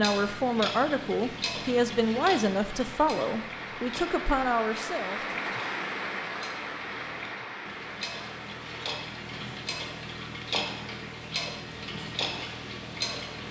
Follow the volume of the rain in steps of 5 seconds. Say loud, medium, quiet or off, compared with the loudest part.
loud, loud, medium.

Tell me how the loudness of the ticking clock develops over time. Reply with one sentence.
The loudness of the ticking clock goes down, then up.